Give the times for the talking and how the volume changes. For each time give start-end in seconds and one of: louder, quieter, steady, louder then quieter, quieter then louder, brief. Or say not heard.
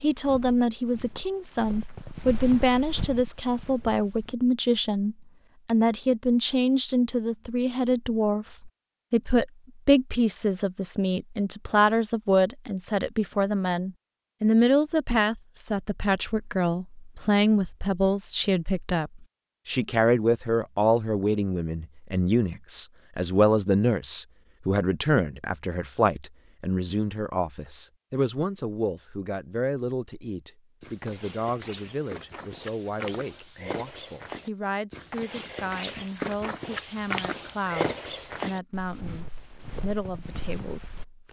0.0-41.2 quieter.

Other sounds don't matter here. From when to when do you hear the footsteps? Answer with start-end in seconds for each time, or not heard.
0.0-4.3, 30.8-41.0.